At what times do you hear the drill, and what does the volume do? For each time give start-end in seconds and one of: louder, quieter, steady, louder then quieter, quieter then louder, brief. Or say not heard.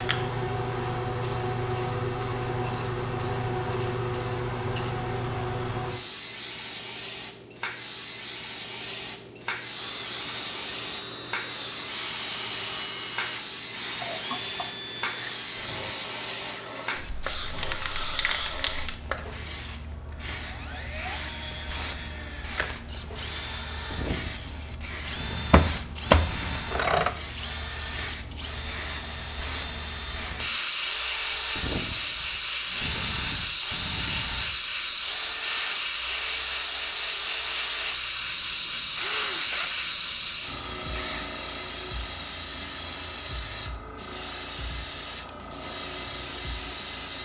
9.8-41.2 steady.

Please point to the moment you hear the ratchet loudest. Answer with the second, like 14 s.
26 s.